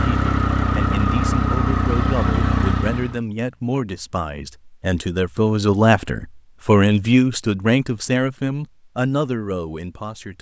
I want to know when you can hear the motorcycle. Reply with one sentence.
The motorcycle can be heard from 0.0 to 3.2 s.